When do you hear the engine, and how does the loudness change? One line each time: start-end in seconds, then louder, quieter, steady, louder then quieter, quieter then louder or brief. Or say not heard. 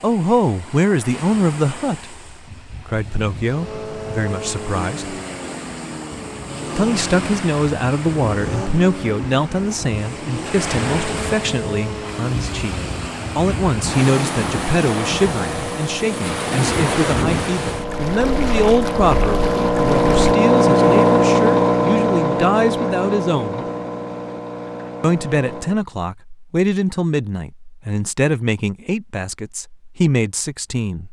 3.5-25.9 louder.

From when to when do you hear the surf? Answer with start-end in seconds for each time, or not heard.
0.0-20.4.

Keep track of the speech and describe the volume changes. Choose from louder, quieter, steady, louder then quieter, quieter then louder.
steady.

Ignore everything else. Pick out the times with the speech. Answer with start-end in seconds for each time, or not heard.
0.0-5.2, 6.8-12.8, 13.3-23.6, 25.0-31.0.